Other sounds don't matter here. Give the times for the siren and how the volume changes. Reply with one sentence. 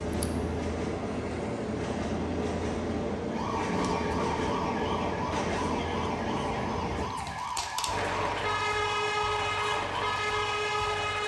You can hear the siren from 3.3 to 11.2 s, at a steady volume.